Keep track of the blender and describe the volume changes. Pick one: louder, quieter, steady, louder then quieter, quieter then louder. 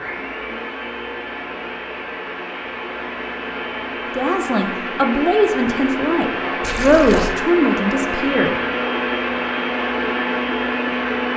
louder.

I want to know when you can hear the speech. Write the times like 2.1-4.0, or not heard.
4.2-8.6.